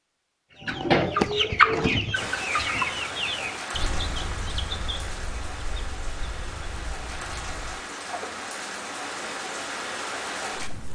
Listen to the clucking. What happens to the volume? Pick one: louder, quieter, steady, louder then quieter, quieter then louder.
quieter.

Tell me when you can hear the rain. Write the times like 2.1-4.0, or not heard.
2.1-10.8.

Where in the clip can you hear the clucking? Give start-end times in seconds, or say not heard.
0.6-8.4.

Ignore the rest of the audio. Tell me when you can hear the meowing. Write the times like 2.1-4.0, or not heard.
not heard.